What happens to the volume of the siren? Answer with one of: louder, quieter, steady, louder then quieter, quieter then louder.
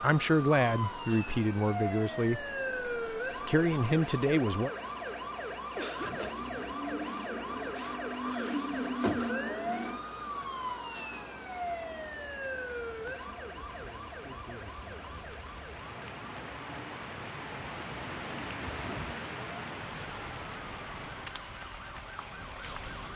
quieter.